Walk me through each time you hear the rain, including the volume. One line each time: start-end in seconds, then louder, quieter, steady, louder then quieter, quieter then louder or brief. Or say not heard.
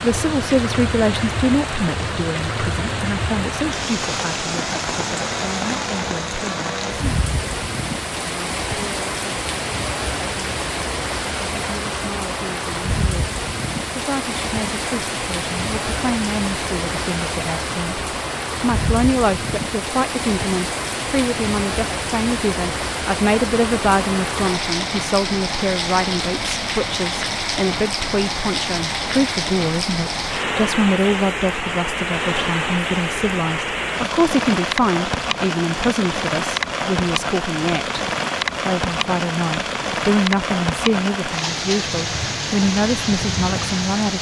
0.0-44.1 steady.